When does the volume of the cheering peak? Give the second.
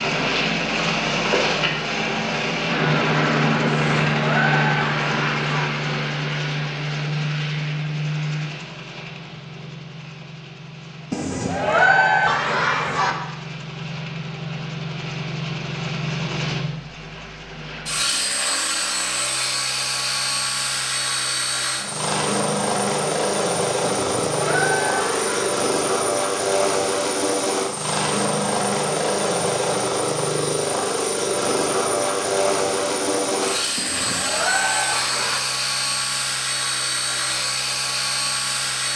12 s.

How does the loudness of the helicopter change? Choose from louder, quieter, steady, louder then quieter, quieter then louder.
quieter then louder.